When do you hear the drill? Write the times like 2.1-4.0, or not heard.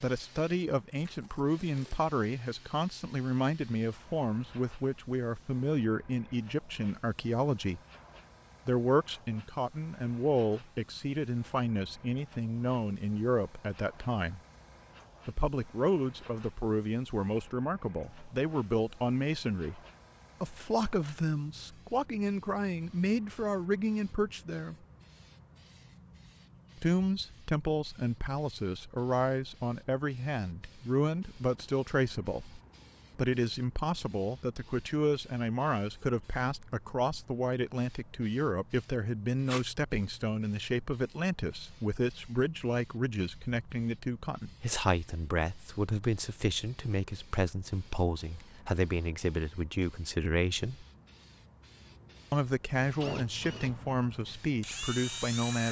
52.8-55.6.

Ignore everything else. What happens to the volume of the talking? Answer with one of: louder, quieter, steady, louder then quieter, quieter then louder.
steady.